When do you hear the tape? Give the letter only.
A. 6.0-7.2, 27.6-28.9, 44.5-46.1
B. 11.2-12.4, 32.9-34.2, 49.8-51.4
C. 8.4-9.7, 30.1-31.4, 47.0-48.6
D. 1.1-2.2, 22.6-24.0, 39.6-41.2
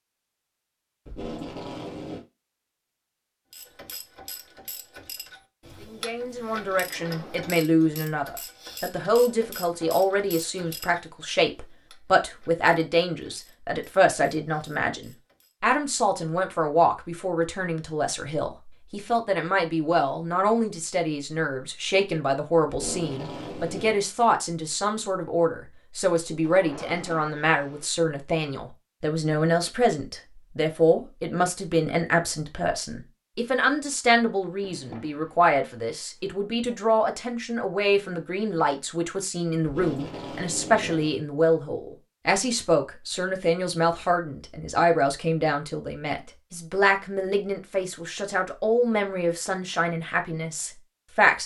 D.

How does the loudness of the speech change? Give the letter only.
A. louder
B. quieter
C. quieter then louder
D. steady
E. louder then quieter
D.